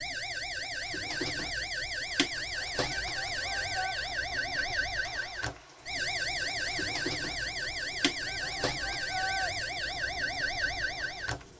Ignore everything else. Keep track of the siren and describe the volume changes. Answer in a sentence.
The loudness of the siren stays about the same.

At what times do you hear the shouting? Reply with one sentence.
The shouting can be heard from 2.9 to 4.0 s and from 8.2 to 9.6 s.